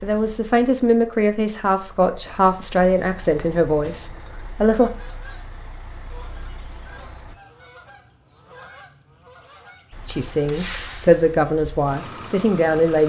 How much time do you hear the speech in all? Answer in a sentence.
The speech can be heard for 8 seconds in total.